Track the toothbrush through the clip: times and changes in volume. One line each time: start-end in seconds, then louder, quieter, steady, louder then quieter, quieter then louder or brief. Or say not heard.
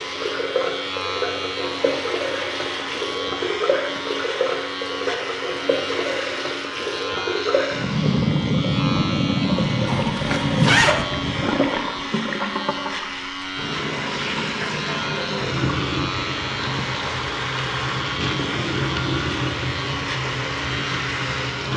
not heard.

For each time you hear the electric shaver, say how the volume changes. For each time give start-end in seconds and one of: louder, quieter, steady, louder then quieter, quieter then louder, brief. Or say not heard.
0.0-21.7 steady.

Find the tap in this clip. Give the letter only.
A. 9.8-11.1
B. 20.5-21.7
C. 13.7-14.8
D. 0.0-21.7
D.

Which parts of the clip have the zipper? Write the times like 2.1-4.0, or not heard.
9.8-11.1.